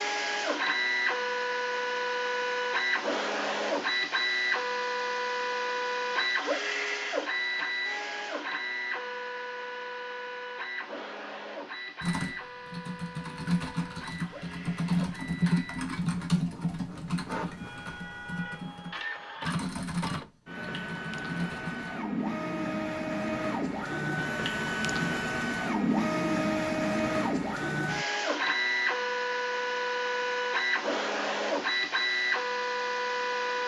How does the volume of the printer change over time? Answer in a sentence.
The volume of the printer goes down, then up.